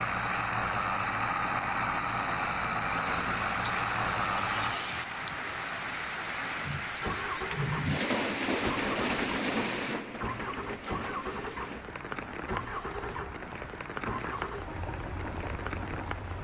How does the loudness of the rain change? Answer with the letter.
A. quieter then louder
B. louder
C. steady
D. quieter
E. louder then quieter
D.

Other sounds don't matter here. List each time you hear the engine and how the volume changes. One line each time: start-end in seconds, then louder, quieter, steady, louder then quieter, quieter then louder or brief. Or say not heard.
0.0-16.3 quieter.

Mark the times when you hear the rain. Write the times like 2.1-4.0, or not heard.
2.9-16.3.